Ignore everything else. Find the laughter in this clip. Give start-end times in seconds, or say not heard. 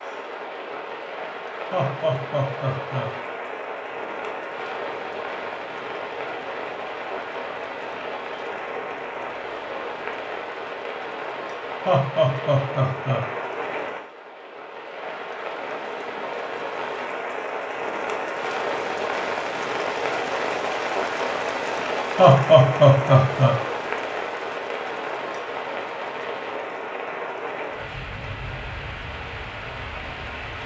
1.7-3.1, 11.8-13.2, 22.1-23.6.